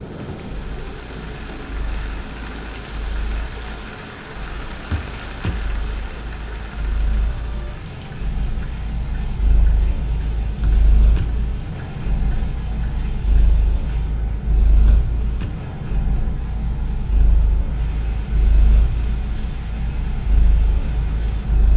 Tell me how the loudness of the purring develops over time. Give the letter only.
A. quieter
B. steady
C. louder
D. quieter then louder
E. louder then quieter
C.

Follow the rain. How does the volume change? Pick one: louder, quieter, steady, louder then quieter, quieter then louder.
quieter.